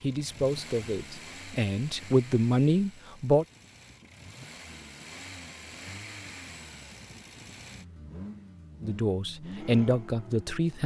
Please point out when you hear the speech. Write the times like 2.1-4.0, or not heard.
0.0-3.5, 8.8-10.8.